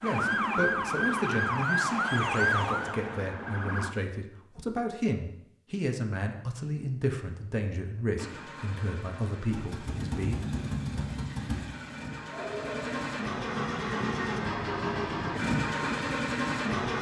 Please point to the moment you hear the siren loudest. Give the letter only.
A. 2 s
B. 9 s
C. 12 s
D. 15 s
A.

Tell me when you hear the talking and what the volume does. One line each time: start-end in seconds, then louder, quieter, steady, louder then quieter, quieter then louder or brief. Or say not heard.
0.0-10.3 steady.